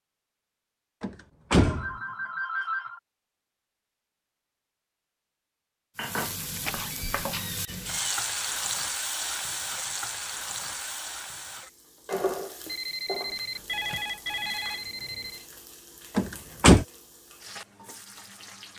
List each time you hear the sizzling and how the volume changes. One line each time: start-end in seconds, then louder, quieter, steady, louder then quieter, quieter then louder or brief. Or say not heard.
6.0-18.7 quieter.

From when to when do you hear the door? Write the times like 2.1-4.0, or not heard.
1.0-1.9, 6.5-8.1, 16.1-16.9.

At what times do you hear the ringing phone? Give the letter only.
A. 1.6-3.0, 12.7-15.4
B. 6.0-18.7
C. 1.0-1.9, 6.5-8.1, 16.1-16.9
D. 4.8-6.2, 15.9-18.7
A.